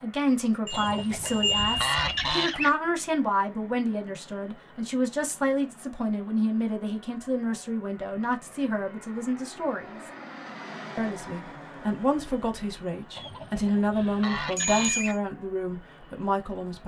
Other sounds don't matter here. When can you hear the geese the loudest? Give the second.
2 s.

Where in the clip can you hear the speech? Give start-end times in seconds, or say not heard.
0.0-10.0, 10.9-16.8.